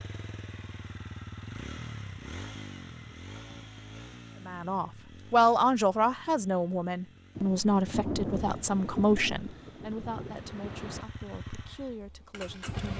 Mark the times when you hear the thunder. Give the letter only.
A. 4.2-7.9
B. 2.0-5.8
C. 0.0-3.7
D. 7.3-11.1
D.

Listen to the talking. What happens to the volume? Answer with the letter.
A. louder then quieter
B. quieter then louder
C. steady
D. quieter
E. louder
D.